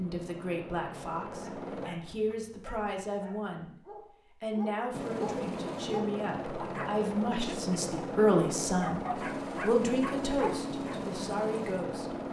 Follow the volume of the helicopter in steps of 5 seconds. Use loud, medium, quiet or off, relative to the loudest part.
medium, loud, loud.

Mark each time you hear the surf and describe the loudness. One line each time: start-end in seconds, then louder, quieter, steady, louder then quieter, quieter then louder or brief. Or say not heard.
not heard.